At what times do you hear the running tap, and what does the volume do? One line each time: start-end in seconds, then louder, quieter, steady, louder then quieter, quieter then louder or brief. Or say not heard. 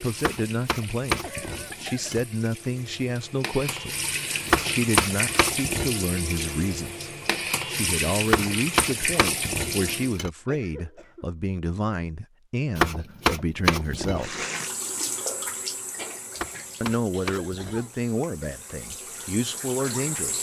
0.0-10.2 louder
14.2-20.3 quieter then louder.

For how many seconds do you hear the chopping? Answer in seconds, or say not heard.
9 s.